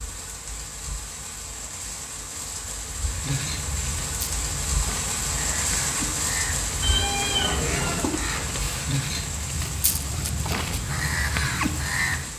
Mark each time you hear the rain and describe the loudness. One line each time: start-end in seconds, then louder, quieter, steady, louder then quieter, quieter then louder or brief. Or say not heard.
0.0-12.3 louder then quieter.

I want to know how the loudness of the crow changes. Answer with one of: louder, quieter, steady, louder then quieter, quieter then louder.
louder.